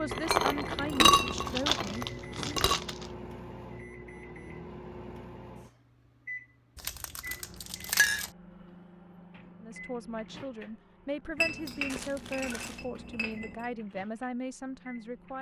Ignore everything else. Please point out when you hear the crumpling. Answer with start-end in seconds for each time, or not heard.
1.1-3.1, 6.8-8.3, 11.8-12.8.